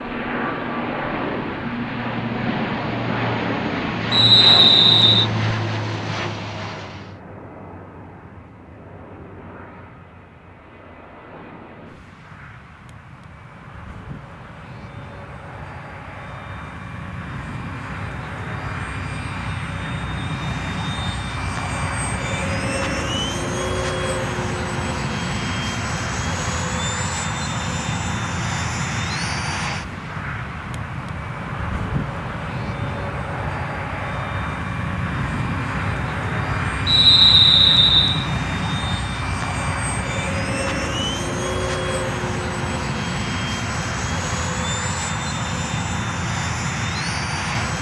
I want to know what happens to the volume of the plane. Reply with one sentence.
The loudness of the plane goes down, then up.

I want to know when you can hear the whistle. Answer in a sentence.
The whistle can be heard from 4.1 to 5.3 s and from 36.9 to 38.2 s.